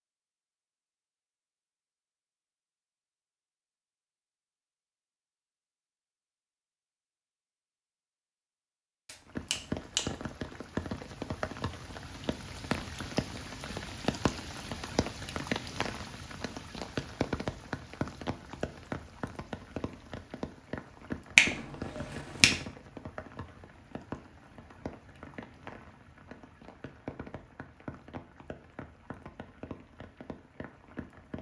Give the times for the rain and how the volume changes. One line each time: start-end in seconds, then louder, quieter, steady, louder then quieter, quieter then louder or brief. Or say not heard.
9.2-31.3 quieter.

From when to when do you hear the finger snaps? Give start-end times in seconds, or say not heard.
9.1-10.1, 21.4-22.6.